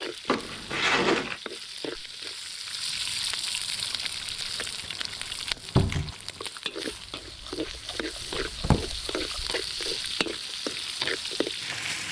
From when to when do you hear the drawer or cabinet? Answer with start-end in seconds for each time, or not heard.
0.2-1.4, 5.8-6.2, 8.2-8.8.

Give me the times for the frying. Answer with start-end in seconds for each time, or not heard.
0.0-12.0.